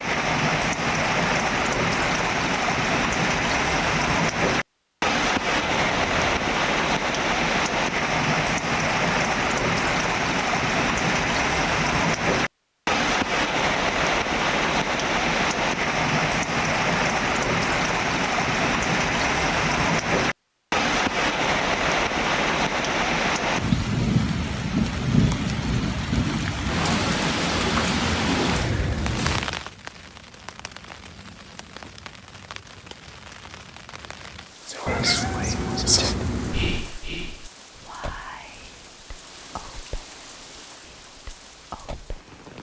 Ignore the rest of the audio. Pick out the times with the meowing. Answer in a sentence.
You can hear the meowing from 5.7 to 6.5 s and from 34.9 to 36.9 s.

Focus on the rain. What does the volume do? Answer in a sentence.
The loudness of the rain goes down.